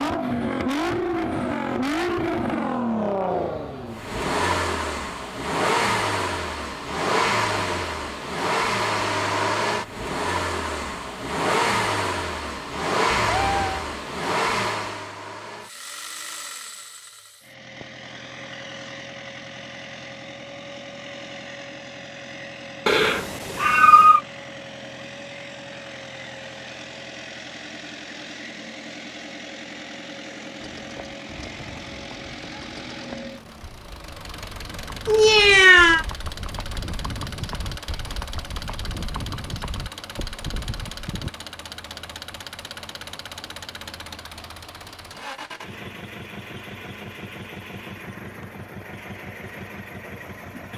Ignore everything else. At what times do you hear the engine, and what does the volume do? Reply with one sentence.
You can hear the engine from 0.0 to 50.7 s, getting quieter.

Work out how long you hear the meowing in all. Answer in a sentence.
You can hear the meowing for 3 seconds altogether.